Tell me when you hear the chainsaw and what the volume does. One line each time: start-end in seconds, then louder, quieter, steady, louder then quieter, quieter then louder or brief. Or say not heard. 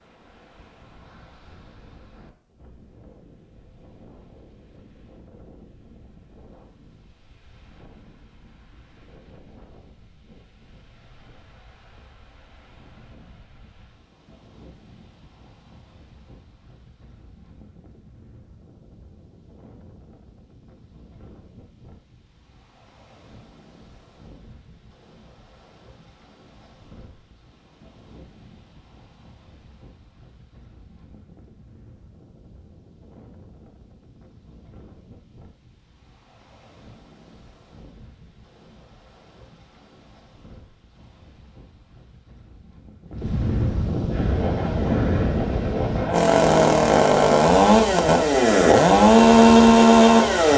44.0-50.5 louder.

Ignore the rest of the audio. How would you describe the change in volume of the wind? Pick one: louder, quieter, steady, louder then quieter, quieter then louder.
louder.